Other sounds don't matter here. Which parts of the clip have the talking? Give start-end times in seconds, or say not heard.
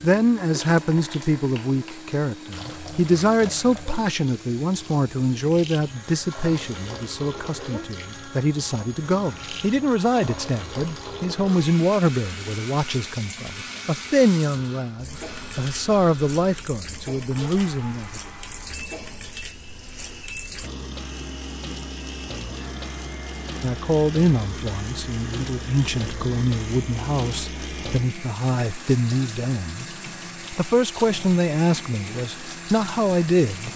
0.0-18.2, 23.6-33.7.